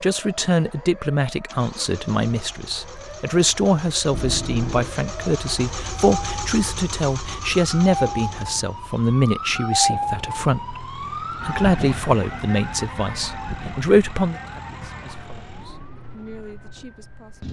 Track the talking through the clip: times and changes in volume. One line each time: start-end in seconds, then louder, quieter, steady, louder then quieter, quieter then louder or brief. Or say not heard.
0.0-17.4 steady.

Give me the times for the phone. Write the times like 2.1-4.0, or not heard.
4.1-5.0.